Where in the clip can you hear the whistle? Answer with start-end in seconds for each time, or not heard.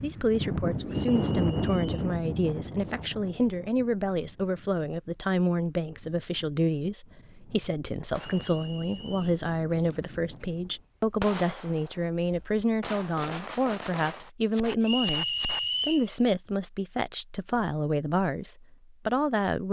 0.9-1.9, 8.2-9.3, 14.8-16.1.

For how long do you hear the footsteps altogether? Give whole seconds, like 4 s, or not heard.
not heard.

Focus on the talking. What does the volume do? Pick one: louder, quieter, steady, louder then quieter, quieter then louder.
steady.